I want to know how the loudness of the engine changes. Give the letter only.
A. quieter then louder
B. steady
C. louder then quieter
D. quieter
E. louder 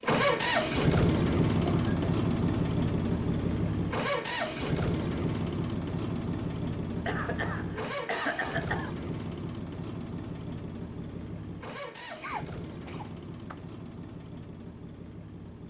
D.